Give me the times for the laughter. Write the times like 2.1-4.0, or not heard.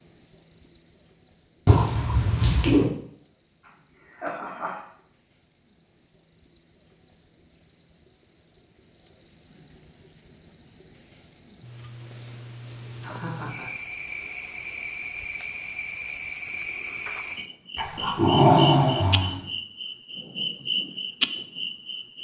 3.6-4.8, 13.0-13.7.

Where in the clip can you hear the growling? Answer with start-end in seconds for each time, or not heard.
1.6-2.9, 17.8-19.4.